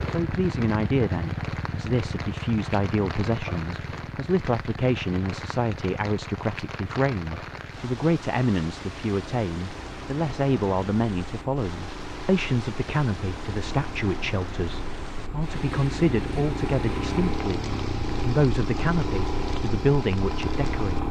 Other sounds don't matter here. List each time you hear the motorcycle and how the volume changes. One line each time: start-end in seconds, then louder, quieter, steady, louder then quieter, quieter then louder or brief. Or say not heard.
0.0-21.0 quieter then louder.